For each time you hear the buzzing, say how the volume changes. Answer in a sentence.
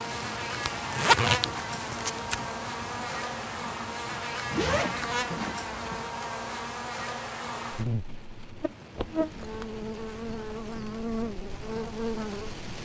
The buzzing can be heard from 0.0 to 12.6 s, at a steady volume.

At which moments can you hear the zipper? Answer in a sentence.
The zipper can be heard from 0.7 to 2.4 s, from 4.5 to 6.0 s and from 8.9 to 9.8 s.